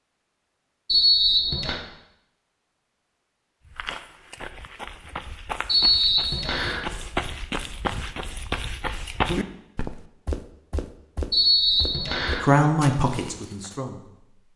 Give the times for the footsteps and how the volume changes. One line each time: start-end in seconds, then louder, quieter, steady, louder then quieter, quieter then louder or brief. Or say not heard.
3.6-13.8 louder then quieter.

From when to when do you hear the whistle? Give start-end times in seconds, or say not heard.
0.8-1.8, 5.7-6.8, 11.3-12.4.